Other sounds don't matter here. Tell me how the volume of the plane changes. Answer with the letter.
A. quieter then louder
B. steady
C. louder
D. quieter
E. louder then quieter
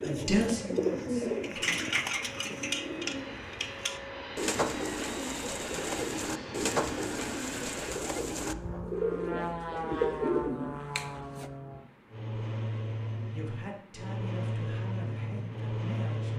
C.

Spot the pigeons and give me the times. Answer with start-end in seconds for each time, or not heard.
0.0-11.5.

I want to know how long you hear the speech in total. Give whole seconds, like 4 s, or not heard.
5 s.